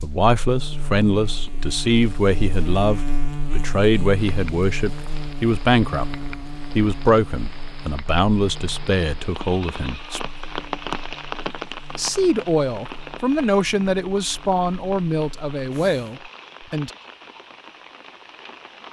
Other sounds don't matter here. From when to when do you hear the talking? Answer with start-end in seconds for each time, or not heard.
0.0-10.2, 11.9-16.9.